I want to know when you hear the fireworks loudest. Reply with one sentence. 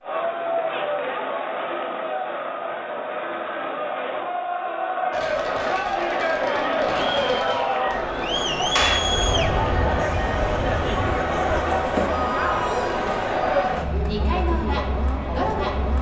The volume of the fireworks peaks at 9 seconds.